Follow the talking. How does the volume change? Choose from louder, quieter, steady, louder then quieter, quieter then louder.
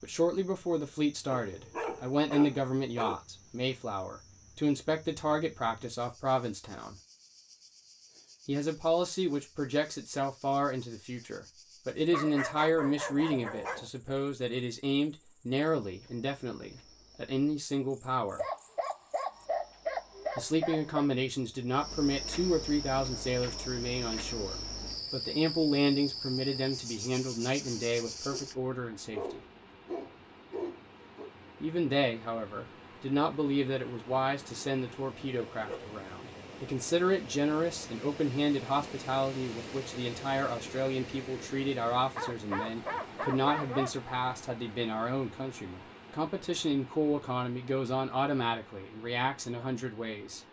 steady.